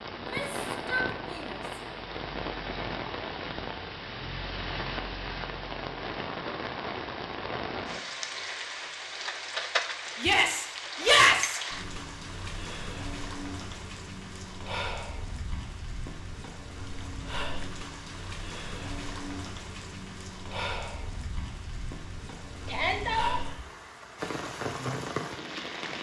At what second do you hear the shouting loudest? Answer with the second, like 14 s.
11 s.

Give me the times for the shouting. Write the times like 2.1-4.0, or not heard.
0.1-1.6, 10.2-11.6, 22.6-23.4.